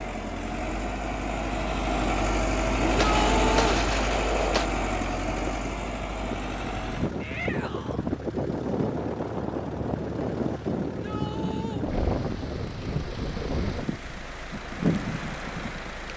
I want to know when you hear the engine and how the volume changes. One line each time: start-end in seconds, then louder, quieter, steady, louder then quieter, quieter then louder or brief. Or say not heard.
0.0-16.1 quieter.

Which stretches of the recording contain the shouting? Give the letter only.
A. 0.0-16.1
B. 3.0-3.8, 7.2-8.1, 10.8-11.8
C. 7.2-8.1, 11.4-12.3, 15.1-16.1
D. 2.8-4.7
B.